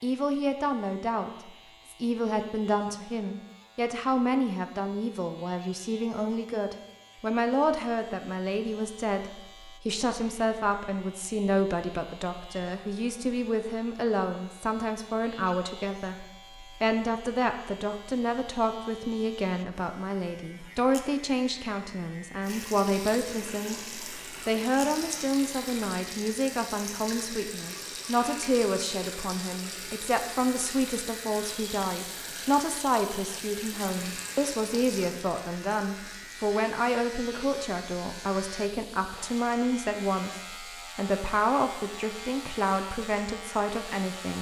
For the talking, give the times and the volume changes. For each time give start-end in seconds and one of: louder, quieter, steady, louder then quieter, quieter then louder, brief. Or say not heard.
0.0-44.3 steady.